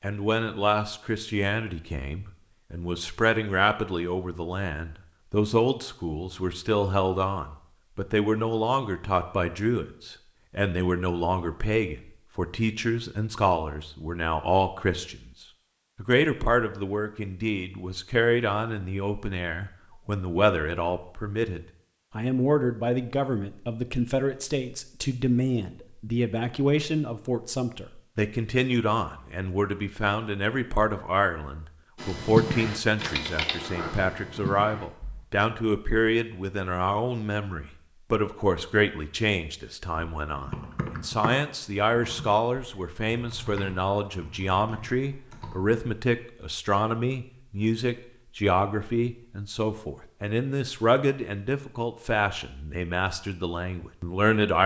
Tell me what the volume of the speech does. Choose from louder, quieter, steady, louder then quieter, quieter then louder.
steady.